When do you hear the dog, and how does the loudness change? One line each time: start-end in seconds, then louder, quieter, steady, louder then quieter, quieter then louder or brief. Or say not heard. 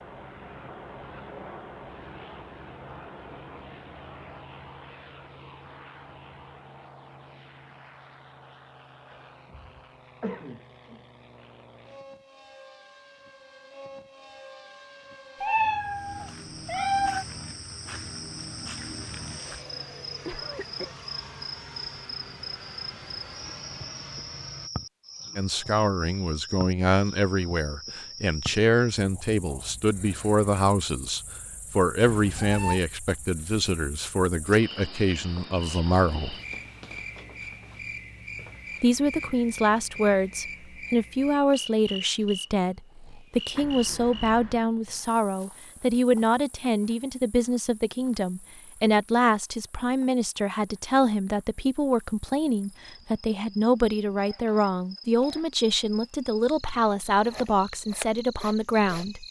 not heard.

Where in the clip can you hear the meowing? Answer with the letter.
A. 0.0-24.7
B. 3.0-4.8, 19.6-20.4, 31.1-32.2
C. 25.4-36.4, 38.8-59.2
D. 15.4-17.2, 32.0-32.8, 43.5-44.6
D.